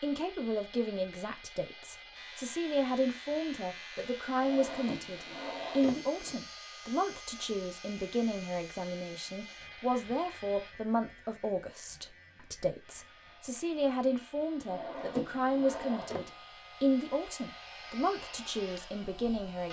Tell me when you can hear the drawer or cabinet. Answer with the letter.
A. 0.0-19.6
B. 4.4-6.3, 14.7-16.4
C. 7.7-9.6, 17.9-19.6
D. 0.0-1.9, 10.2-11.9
B.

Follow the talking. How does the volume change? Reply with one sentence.
The volume of the talking stays about the same.